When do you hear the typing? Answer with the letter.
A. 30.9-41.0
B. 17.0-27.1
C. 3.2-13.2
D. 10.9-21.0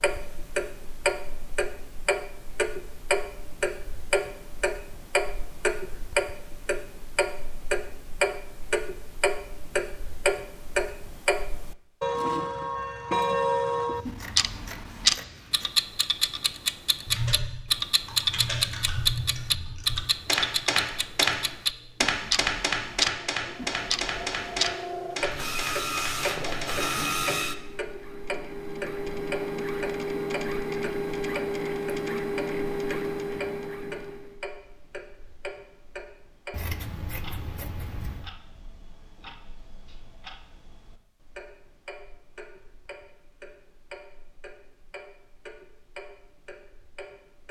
B.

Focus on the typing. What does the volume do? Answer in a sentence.
The loudness of the typing goes up, then down.